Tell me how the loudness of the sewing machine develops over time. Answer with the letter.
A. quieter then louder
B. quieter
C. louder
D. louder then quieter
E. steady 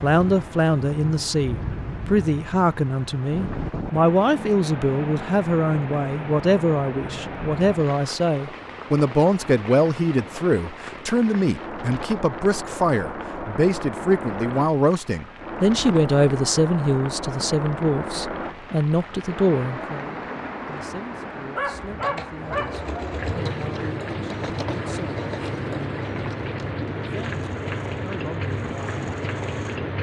B.